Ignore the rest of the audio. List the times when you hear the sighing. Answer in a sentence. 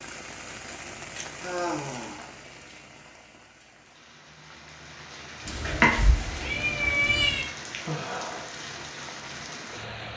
You can hear the sighing from 1.4 to 2.2 s and from 7.8 to 8.6 s.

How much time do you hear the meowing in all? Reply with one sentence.
You can hear the meowing for 2 seconds altogether.